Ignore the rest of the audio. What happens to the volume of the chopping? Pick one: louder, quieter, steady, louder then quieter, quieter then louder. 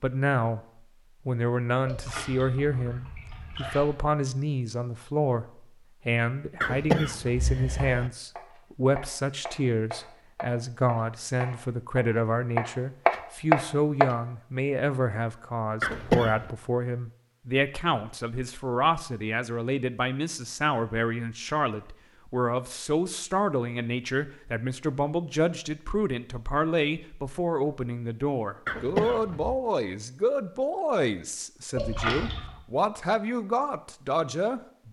louder.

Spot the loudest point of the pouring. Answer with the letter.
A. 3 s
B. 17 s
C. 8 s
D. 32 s
D.